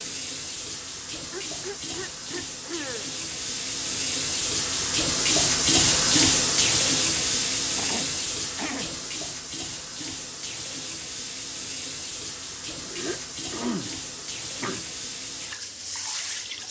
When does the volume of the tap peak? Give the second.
6 s.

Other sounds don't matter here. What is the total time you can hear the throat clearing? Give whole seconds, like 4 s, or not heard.
5 s.